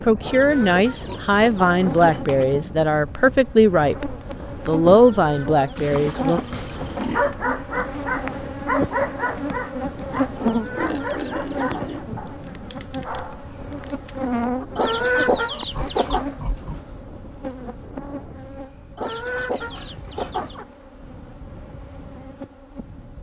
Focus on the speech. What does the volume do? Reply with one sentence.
The volume of the speech stays about the same.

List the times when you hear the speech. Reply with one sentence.
You can hear the speech from 0.0 to 6.4 s.